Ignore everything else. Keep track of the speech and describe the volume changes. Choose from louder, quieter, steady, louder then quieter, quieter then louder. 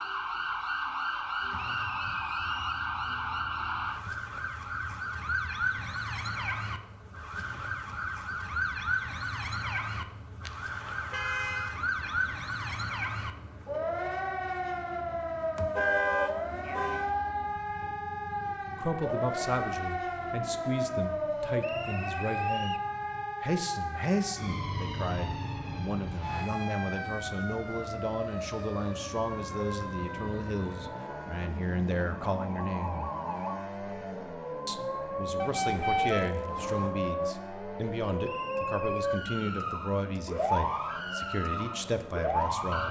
steady.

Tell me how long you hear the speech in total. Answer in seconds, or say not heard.
22 s.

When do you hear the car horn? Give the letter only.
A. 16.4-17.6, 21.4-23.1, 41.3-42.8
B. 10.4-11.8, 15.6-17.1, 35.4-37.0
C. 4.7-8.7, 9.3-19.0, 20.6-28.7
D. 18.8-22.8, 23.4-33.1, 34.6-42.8
B.